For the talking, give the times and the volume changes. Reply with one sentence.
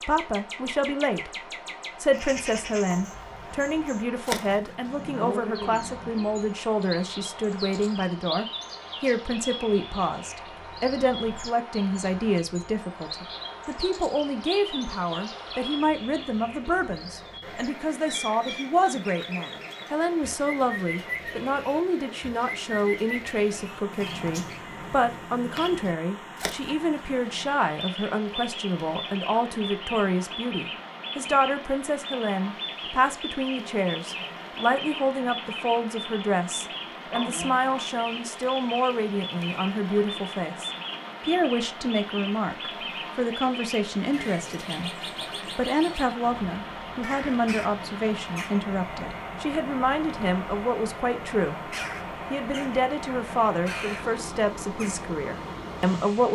The talking can be heard from 0.1 to 56.3 s, at a steady volume.